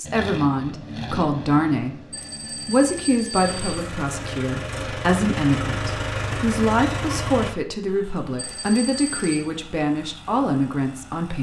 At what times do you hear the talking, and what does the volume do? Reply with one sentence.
You can hear the talking briefly from 0.0 to 2.0 s; and from 2.6 to 11.3 s, at a steady volume.